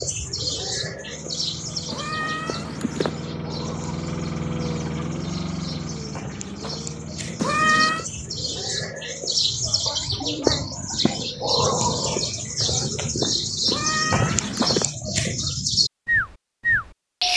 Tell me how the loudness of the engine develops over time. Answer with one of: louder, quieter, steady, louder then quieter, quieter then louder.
louder then quieter.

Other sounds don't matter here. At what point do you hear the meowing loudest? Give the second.
8 s.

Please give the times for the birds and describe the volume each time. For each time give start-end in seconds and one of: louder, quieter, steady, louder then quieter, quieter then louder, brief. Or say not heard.
0.0-17.3 quieter then louder.